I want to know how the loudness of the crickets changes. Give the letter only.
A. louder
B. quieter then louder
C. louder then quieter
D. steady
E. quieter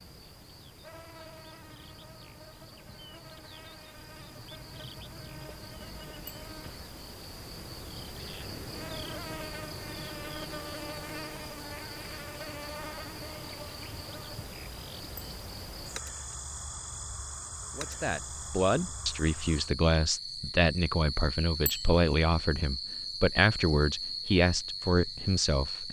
A.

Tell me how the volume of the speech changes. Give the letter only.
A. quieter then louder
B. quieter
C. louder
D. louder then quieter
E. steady
E.